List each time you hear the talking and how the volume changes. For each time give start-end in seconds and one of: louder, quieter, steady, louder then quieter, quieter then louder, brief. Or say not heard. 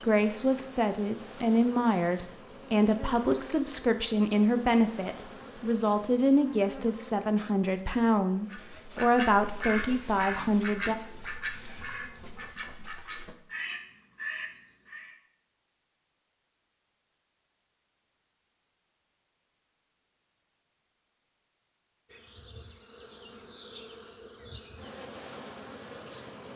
0.0-10.9 steady.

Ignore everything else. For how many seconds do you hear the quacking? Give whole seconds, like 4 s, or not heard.
7 s.